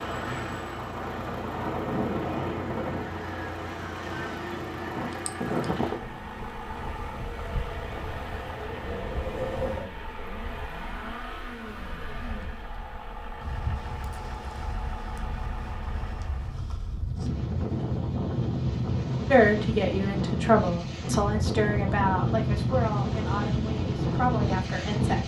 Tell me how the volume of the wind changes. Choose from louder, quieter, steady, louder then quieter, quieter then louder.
quieter then louder.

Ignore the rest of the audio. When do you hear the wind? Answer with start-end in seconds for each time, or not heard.
0.0-25.2.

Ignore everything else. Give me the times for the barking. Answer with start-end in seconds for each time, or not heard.
not heard.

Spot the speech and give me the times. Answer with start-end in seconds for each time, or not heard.
19.2-25.2.